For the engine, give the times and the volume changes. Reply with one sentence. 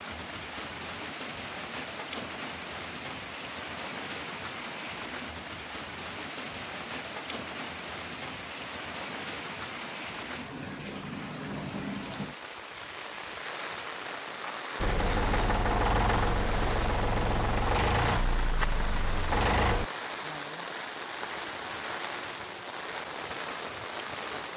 The engine can be heard from 14.8 to 19.9 s, at a steady volume.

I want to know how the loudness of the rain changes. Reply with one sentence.
The loudness of the rain stays about the same.